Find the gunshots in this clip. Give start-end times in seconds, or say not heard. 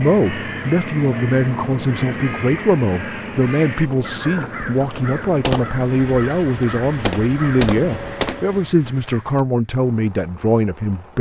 5.0-9.4.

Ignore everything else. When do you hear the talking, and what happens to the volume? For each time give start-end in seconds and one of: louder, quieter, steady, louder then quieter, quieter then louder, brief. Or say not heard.
0.0-11.1 steady.